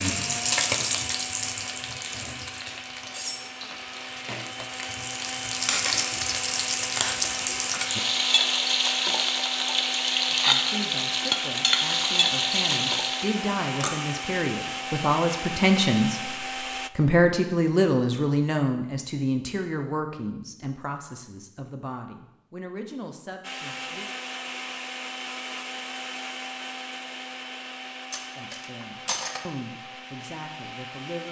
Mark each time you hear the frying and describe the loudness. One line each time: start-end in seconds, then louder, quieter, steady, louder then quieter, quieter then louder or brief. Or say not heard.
0.0-13.4 quieter then louder.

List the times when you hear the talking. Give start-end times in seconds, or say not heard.
10.2-24.1, 28.4-31.2.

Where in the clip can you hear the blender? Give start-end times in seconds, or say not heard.
0.0-16.9, 23.4-31.2.